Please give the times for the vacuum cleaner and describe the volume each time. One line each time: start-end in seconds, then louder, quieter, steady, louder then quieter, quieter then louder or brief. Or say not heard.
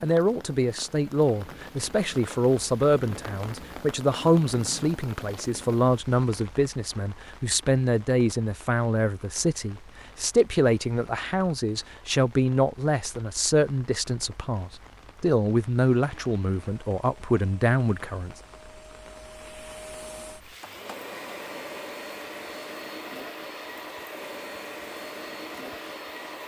16.1-26.4 louder.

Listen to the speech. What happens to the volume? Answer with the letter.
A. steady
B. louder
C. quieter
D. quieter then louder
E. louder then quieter
A.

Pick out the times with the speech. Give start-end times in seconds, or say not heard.
0.0-18.4.